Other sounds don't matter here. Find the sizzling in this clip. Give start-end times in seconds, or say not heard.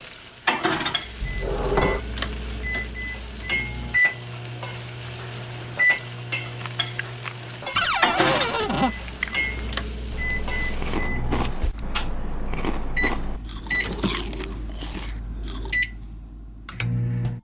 0.0-11.0.